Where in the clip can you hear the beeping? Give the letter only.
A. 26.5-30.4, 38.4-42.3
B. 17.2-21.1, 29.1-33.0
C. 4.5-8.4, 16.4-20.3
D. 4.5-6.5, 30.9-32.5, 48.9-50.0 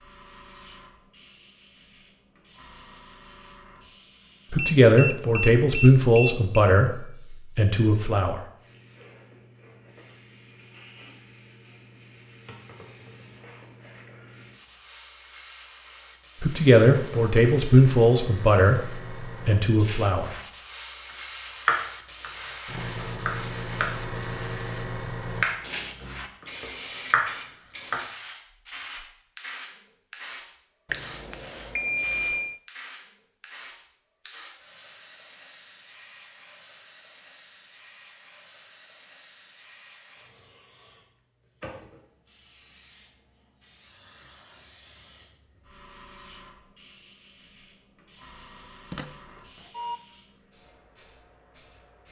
D.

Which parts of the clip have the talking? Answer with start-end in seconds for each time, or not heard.
4.5-8.4, 16.4-20.3.